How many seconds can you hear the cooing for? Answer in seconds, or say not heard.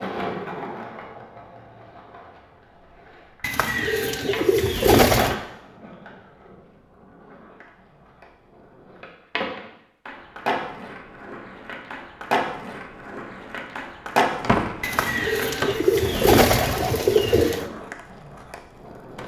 5 s.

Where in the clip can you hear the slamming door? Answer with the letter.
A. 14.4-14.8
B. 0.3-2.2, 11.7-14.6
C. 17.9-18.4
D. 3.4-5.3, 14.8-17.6
A.